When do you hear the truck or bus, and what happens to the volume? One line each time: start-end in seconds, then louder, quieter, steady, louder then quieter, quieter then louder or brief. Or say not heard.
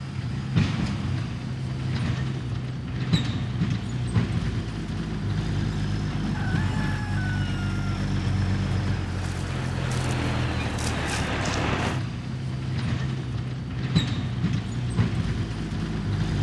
0.0-16.3 steady.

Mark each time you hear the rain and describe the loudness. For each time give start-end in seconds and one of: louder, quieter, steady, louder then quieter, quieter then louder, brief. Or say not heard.
not heard.